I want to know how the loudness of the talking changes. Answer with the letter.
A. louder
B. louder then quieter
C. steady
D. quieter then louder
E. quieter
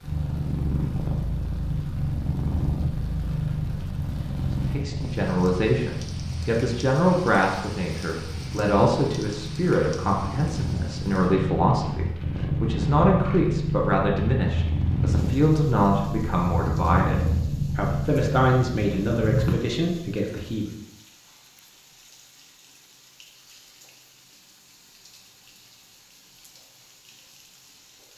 C.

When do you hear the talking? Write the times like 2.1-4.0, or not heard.
4.5-17.1, 17.8-20.8.